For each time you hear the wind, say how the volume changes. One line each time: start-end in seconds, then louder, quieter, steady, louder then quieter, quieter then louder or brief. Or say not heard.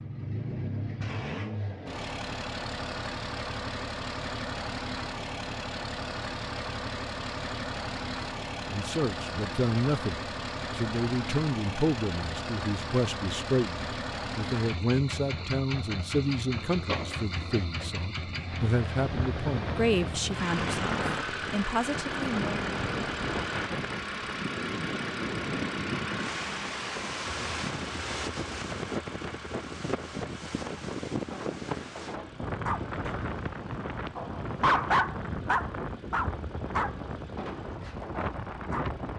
19.0-39.1 steady.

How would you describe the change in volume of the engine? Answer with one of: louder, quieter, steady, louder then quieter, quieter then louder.
quieter.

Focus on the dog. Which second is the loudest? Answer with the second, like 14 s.
35 s.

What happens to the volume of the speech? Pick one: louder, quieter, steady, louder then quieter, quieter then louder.
steady.